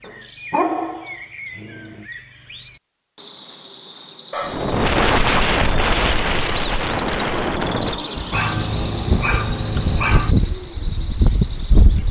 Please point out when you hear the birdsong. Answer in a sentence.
The birdsong can be heard from 0.0 to 12.0 s.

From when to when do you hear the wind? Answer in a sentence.
The wind can be heard from 4.5 to 12.0 s.